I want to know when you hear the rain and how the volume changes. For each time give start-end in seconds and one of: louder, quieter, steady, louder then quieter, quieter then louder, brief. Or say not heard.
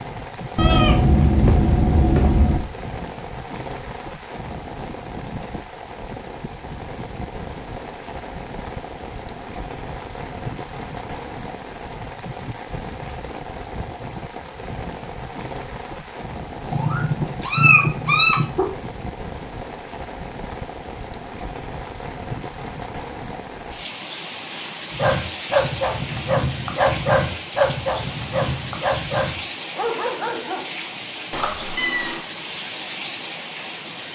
0.0-34.0 steady.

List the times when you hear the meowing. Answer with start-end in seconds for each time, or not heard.
0.6-2.6, 16.7-18.7, 31.3-32.2.